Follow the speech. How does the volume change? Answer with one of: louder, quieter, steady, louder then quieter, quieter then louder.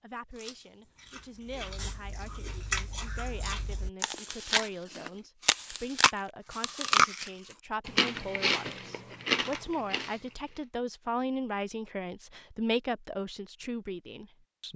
louder.